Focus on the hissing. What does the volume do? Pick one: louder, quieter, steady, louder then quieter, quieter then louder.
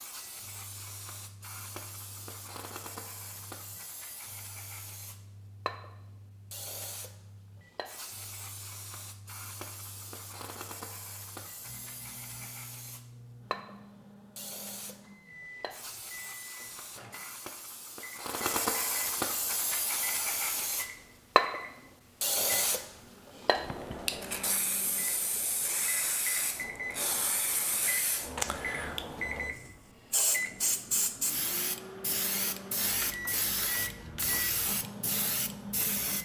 louder.